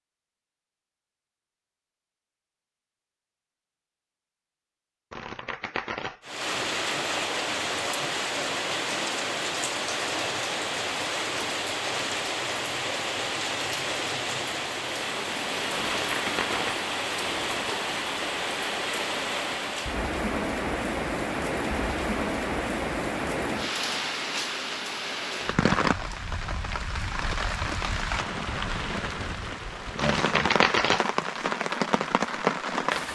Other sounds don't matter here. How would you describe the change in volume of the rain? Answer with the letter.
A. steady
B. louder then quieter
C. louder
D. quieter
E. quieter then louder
A.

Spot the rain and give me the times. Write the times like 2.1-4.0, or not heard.
6.2-33.1.